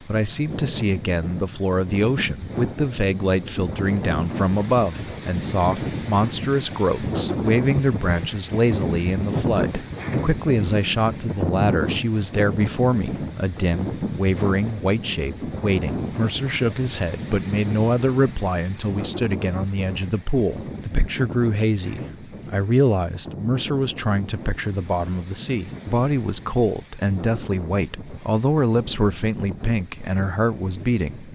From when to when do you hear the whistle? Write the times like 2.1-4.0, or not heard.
not heard.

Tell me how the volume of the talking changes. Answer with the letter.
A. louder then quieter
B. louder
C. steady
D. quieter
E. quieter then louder
C.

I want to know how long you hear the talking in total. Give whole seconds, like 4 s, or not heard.
31 s.